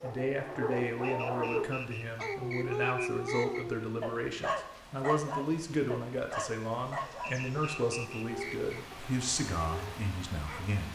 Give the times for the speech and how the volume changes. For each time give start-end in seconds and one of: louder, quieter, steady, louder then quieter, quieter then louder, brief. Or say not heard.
0.0-10.8 steady.